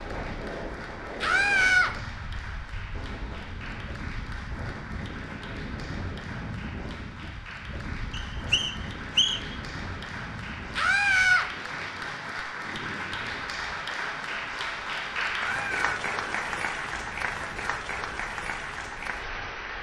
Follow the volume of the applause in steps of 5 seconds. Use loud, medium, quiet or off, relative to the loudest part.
medium, medium, loud, loud.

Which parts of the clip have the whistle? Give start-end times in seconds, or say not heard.
8.1-9.6.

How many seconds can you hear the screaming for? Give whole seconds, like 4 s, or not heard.
2 s.